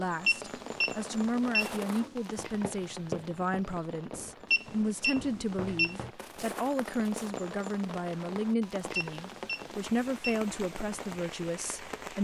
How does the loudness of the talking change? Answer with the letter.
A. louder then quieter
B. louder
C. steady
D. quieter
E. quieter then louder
C.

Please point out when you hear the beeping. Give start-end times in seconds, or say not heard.
0.2-2.1, 4.5-6.0, 8.9-10.4.